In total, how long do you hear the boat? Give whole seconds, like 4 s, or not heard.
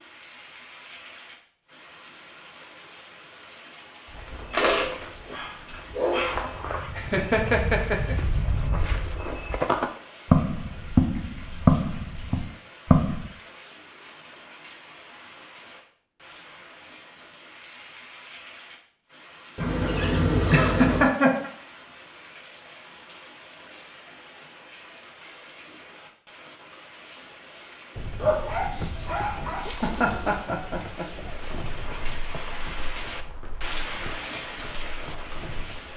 8 s.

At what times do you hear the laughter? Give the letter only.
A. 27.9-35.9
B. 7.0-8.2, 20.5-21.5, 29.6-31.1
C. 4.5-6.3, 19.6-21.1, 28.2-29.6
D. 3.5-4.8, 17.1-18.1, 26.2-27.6
B.